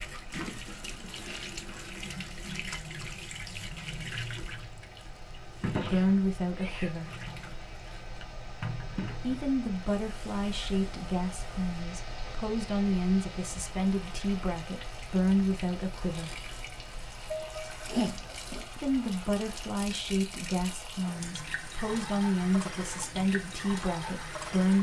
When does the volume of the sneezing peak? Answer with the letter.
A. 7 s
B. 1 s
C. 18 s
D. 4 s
C.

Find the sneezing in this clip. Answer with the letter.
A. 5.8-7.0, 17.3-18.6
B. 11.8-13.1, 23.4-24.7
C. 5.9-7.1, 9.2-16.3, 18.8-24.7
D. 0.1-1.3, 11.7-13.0
A.